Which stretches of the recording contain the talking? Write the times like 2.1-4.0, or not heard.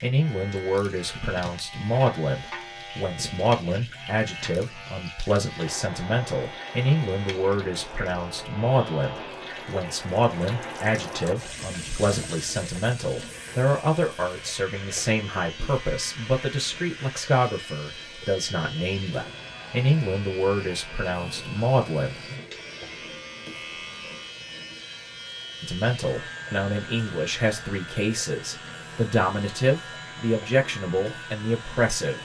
0.0-22.2, 25.6-32.1.